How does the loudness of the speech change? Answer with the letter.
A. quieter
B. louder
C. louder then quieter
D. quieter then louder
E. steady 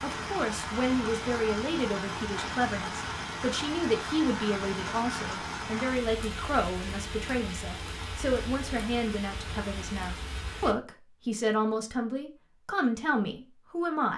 E.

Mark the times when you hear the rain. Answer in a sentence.
The rain can be heard from 0.0 to 10.8 s.